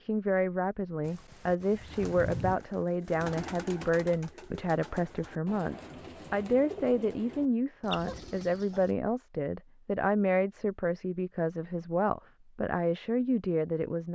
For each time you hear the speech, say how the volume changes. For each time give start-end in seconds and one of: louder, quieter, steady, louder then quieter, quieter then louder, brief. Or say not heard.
0.0-14.1 steady.